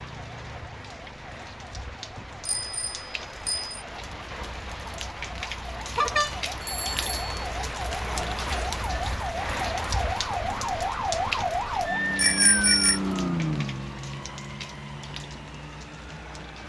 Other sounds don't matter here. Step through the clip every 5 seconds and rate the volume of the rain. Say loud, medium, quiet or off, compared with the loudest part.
medium, loud, loud, medium.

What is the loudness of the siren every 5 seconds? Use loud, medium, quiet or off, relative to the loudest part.
quiet, medium, loud, quiet.